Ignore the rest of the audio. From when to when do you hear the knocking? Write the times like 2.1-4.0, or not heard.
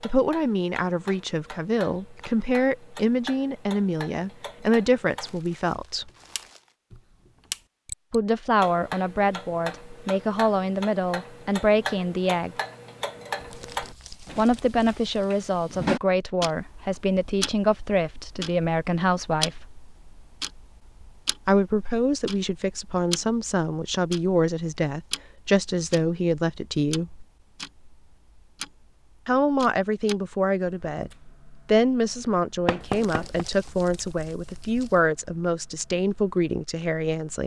32.6-33.5.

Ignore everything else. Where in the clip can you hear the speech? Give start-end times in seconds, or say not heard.
0.0-6.1, 8.1-12.6, 14.3-19.7, 21.4-27.2, 29.2-37.4.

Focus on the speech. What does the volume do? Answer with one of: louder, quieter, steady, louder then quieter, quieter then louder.
steady.